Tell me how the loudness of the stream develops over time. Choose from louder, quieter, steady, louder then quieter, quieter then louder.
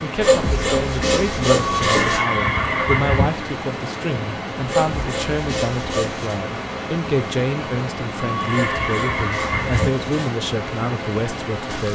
steady.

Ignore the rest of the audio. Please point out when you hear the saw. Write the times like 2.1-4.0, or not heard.
0.2-2.2, 4.7-6.4, 8.5-10.3.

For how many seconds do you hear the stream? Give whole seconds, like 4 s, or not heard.
12 s.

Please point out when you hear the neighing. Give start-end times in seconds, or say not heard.
1.6-3.3, 8.2-9.9.